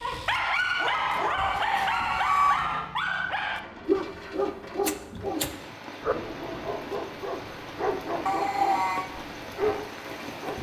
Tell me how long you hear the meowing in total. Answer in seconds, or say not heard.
2 s.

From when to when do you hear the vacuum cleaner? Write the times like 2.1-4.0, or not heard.
not heard.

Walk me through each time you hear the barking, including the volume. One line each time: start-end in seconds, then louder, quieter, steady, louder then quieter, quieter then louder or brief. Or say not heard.
0.0-10.5 quieter.